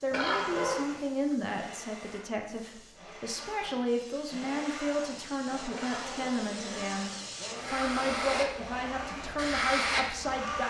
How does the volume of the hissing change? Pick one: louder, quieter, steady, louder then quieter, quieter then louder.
louder.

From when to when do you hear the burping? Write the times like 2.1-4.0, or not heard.
0.1-0.8, 5.7-6.5.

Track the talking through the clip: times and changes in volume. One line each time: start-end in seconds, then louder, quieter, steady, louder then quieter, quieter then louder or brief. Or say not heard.
0.0-10.6 steady.